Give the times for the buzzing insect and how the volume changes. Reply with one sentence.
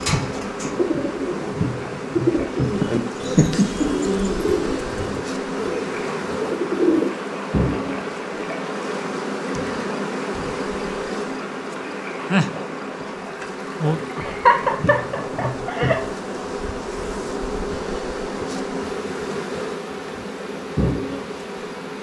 The buzzing insect can be heard from 0.0 to 21.9 s, at a steady volume.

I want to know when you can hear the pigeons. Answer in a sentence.
The pigeons can be heard from 0.0 to 7.2 s.